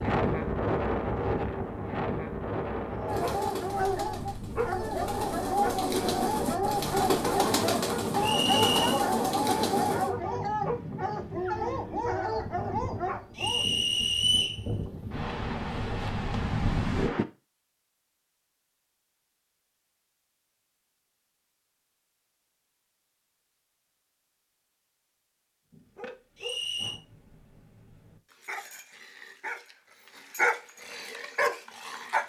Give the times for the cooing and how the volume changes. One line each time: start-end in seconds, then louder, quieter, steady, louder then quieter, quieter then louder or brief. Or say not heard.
3.0-10.1 louder.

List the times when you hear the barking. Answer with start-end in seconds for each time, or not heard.
2.9-13.7, 25.7-32.2.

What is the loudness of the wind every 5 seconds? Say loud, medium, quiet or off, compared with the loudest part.
loud, medium, medium, loud, off, off, off.